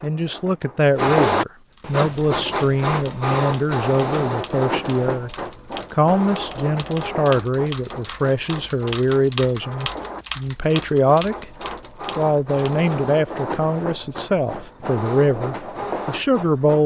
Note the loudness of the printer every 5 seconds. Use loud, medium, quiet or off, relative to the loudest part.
loud, medium, medium, medium.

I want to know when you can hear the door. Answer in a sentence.
You can't hear the door here.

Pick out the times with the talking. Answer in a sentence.
The talking can be heard from 0.0 to 5.3 s, from 5.9 to 11.4 s and from 12.2 to 16.8 s.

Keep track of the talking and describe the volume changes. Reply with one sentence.
The volume of the talking stays about the same.